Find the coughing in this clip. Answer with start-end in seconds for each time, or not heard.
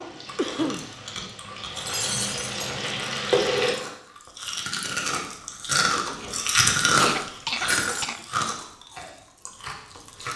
0.3-0.9, 7.0-8.2.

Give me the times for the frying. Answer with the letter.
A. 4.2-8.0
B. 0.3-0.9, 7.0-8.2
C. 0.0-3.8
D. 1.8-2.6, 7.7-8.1
C.